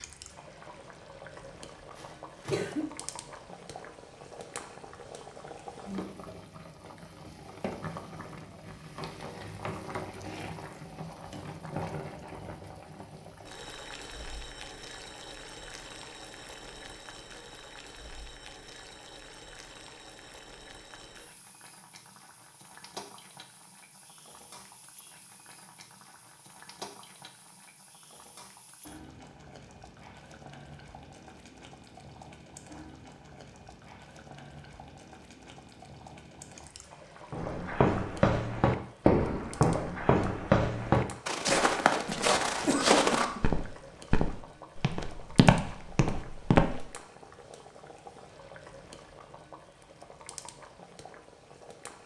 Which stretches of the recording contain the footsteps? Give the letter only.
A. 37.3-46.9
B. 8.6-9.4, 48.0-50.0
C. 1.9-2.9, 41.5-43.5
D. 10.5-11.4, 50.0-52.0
A.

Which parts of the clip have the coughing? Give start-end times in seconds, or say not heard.
1.9-2.9, 41.5-43.5.